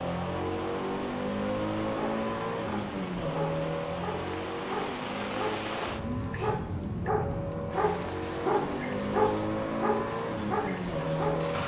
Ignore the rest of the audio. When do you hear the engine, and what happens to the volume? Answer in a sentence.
The engine can be heard from 0.0 to 11.6 s, getting quieter then louder.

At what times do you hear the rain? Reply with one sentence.
The rain can be heard from 0.0 to 11.6 s.